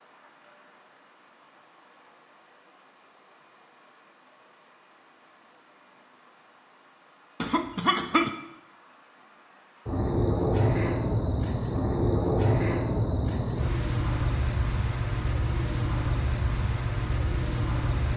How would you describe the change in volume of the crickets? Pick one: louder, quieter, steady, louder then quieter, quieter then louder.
louder.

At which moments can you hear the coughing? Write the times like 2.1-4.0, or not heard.
7.4-8.3.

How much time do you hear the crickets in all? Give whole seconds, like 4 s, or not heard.
18 s.